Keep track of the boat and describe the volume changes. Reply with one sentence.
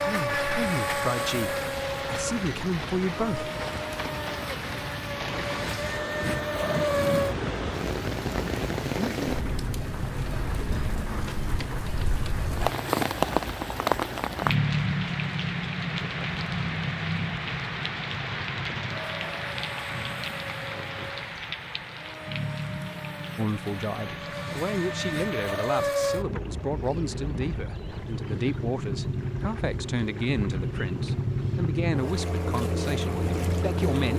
The loudness of the boat goes down, then up.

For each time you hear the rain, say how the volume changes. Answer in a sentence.
You can hear the rain from 0.0 to 25.7 s, getting louder then quieter.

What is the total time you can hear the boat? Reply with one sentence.
The boat can be heard for 34 seconds in total.